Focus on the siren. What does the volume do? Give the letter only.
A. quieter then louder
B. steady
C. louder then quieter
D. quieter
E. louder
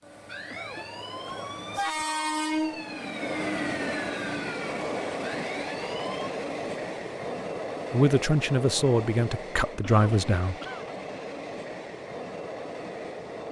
B.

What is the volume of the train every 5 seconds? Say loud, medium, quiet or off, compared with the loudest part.
loud, loud, medium.